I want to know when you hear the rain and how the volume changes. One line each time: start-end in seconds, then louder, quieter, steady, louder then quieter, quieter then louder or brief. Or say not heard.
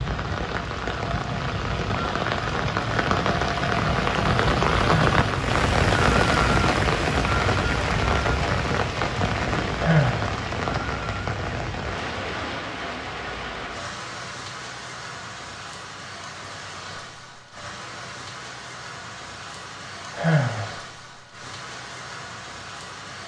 0.0-23.2 quieter.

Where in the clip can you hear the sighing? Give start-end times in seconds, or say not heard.
4.8-5.2, 9.8-10.3, 20.1-20.8.